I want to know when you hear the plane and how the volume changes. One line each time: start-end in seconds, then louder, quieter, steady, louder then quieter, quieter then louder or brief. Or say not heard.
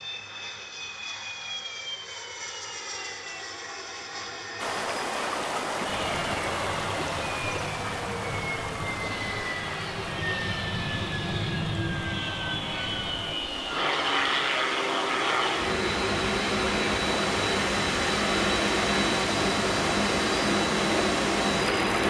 0.0-22.0 louder.